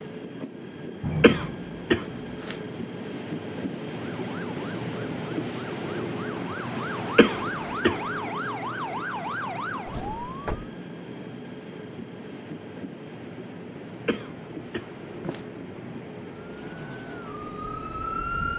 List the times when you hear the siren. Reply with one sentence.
The siren can be heard from 4.0 to 10.7 s and from 16.2 to 18.5 s.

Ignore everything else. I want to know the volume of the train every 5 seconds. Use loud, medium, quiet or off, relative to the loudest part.
loud, loud, medium, medium.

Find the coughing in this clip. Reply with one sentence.
The coughing can be heard from 1.2 to 2.5 s, from 7.2 to 8.0 s and from 14.1 to 15.4 s.